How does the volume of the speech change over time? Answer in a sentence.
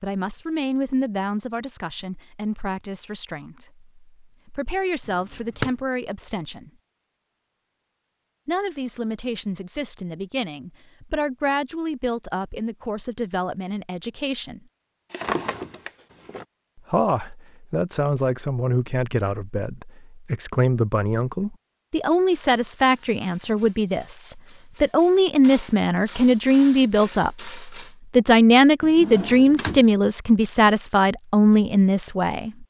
The volume of the speech goes up.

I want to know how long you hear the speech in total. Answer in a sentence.
You can hear the speech for 29 seconds altogether.